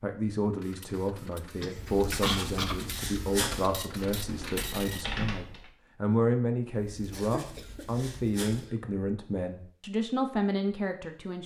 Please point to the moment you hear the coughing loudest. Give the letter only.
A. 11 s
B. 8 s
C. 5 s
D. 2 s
D.